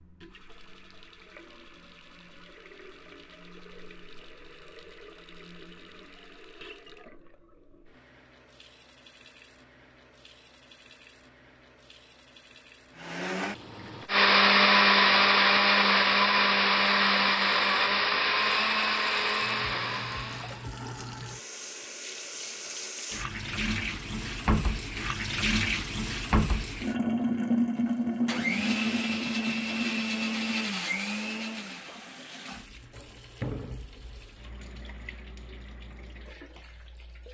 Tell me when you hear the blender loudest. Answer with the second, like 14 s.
15 s.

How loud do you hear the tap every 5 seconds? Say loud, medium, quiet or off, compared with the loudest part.
quiet, quiet, quiet, quiet, medium, loud, quiet, quiet.